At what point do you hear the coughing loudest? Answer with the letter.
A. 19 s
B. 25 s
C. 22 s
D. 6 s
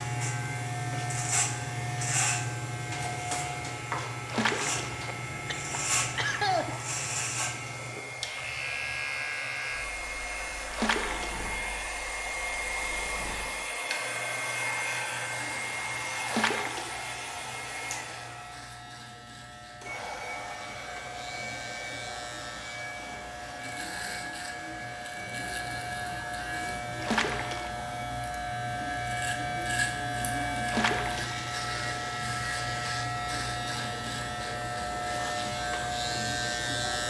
D.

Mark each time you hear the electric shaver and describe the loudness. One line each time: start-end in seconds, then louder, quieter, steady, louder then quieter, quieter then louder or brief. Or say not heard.
0.0-37.0 quieter then louder.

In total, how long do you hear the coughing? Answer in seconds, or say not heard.
2 s.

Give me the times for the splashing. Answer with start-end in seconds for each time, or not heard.
4.2-5.1, 10.7-11.4, 16.2-17.1, 27.0-27.9, 30.6-31.5.